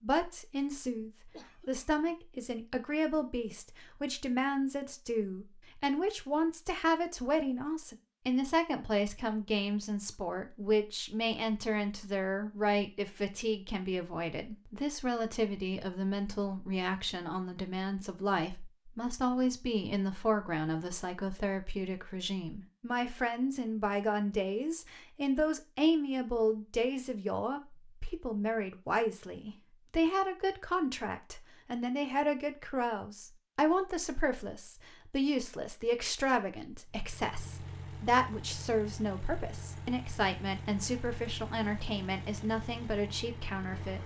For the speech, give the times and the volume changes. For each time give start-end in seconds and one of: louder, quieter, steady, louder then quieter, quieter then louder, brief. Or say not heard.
0.0-44.0 steady.